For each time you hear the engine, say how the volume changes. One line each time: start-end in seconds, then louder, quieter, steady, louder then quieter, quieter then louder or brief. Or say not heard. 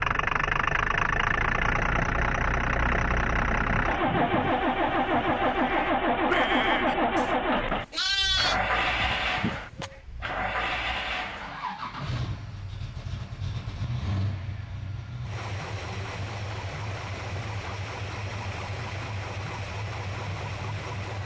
0.0-21.2 quieter.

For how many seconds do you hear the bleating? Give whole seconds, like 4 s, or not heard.
6 s.